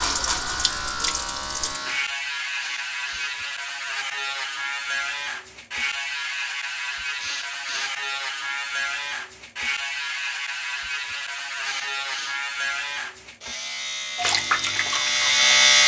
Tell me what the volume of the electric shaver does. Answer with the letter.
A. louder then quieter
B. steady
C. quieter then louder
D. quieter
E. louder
B.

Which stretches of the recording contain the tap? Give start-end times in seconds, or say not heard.
0.0-1.8, 14.2-15.8.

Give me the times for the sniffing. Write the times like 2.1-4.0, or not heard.
2.6-3.4, 7.2-8.0, 11.6-12.4.